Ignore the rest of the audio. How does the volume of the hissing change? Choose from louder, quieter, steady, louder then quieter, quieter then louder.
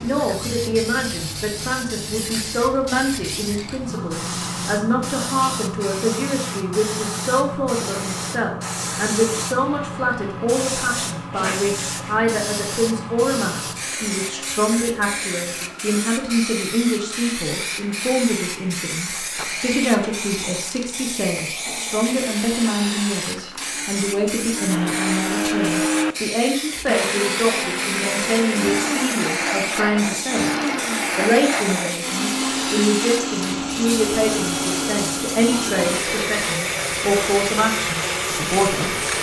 steady.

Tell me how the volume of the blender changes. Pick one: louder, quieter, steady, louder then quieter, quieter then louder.
louder.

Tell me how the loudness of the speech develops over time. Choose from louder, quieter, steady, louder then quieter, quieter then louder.
steady.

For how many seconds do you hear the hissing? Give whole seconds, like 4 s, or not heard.
39 s.